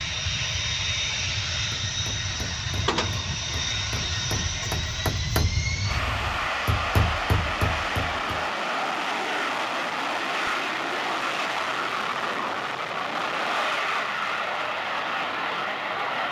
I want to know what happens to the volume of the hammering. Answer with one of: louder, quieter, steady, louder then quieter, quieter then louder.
louder.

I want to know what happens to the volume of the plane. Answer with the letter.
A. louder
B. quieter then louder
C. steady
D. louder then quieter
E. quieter
C.